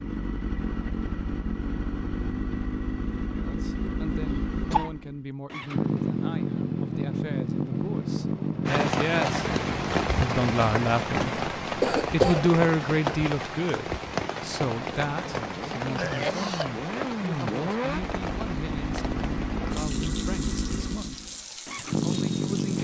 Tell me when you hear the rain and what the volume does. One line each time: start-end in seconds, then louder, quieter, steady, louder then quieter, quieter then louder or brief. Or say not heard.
8.7-22.8 quieter.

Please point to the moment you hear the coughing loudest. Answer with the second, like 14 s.
12 s.